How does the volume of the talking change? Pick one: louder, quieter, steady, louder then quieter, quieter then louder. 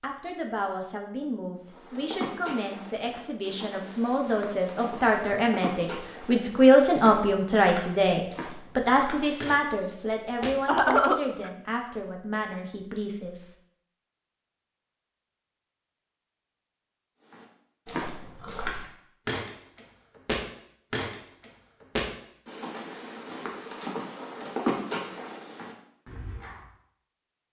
louder then quieter.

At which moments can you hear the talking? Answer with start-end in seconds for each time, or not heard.
0.0-13.6.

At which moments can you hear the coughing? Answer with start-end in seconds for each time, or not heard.
10.4-11.5.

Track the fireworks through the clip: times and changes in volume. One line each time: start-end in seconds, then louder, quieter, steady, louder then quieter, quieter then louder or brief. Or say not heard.
not heard.